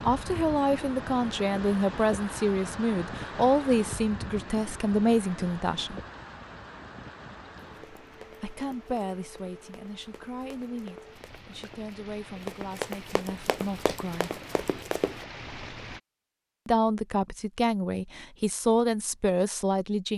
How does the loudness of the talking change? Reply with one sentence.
The loudness of the talking goes down, then up.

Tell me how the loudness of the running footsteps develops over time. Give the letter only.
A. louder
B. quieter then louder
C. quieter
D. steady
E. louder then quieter
A.